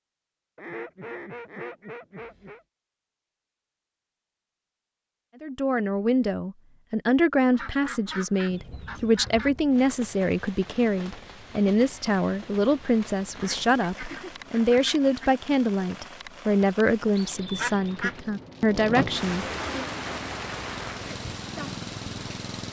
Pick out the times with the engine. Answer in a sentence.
The engine can be heard from 19.7 to 22.6 s.